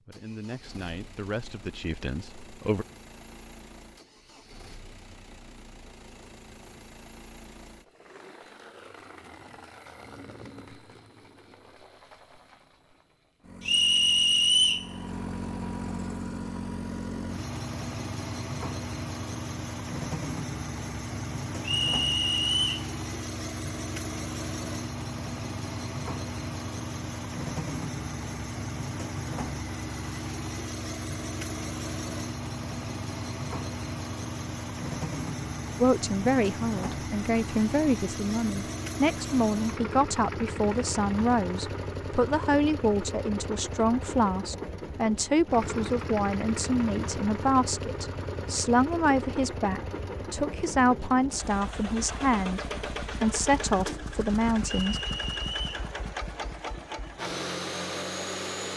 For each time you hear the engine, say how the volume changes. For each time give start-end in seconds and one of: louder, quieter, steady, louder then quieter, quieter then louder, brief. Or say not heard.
0.0-58.7 louder.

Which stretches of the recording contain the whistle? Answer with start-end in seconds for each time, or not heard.
13.7-14.9, 21.6-22.9, 54.6-55.9.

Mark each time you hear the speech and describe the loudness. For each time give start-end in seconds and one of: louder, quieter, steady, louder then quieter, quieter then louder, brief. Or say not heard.
0.1-2.9 brief
35.8-55.0 steady.